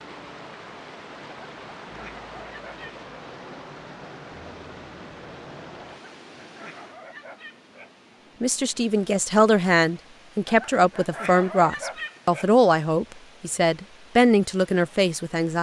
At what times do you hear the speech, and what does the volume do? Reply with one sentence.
You can hear the speech from 8.4 to 15.5 s, at a steady volume.